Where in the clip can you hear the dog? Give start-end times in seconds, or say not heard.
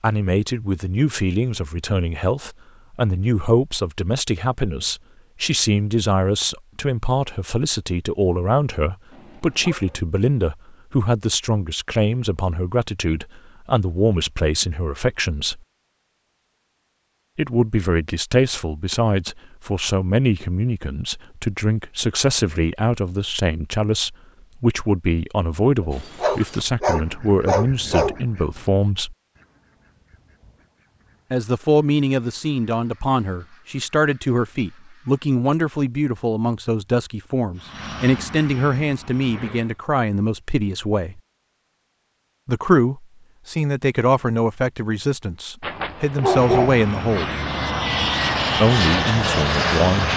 9.1-10.0, 25.8-28.1, 45.6-46.8.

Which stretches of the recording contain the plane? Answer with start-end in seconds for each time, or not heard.
37.5-39.8, 46.2-50.1.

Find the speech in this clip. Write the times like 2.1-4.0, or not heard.
0.0-15.6, 17.4-29.1, 31.3-41.2, 42.5-47.4, 48.6-50.1.